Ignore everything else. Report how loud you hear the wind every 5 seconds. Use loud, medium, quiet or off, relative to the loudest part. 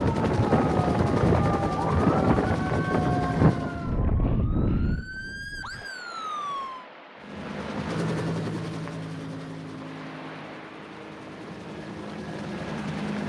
loud, quiet, quiet.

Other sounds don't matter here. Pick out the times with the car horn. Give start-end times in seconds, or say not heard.
not heard.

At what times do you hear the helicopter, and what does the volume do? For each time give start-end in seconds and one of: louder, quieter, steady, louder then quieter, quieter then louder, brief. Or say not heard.
0.0-4.0 steady
7.2-13.2 quieter then louder.